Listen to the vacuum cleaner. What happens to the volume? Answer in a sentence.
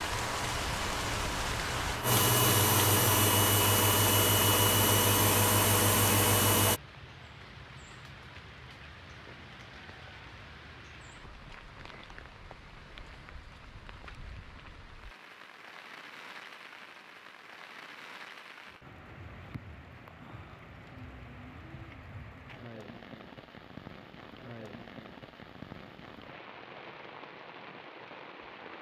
The volume of the vacuum cleaner goes up.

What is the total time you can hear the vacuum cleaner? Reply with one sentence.
You can hear the vacuum cleaner for 7 seconds altogether.